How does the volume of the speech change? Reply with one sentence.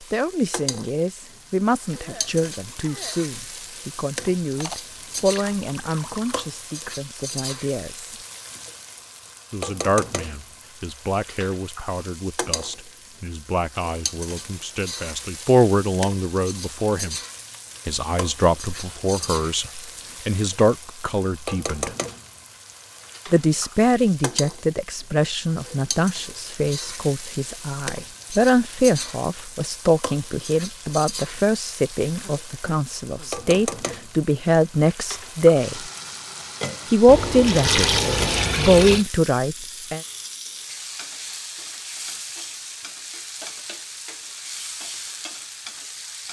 The volume of the speech goes up.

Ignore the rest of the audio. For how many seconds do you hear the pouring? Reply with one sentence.
The pouring can be heard for 4 seconds in total.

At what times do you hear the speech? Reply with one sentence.
The speech can be heard from 0.0 to 8.1 s, from 9.5 to 17.1 s, from 17.9 to 21.9 s, from 23.3 to 35.8 s and from 36.9 to 40.0 s.